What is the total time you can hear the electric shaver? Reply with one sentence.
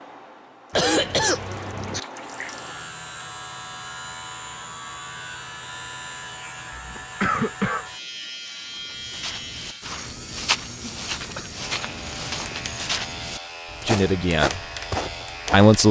You can hear the electric shaver for 14 seconds altogether.